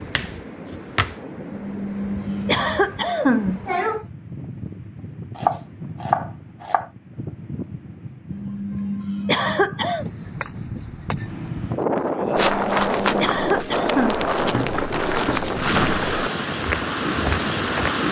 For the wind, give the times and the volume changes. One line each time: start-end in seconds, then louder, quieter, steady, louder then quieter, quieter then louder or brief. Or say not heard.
0.0-18.0 louder.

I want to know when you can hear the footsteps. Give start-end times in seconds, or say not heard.
12.1-18.0.